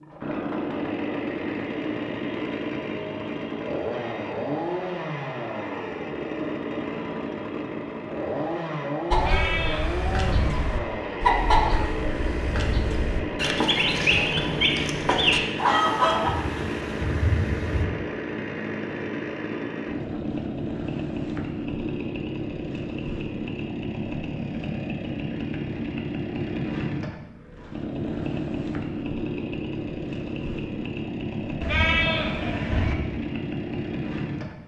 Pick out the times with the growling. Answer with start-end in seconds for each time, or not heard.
not heard.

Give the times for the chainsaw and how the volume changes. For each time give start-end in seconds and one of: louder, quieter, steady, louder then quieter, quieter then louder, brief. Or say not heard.
0.0-34.6 steady.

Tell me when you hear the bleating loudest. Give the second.
32 s.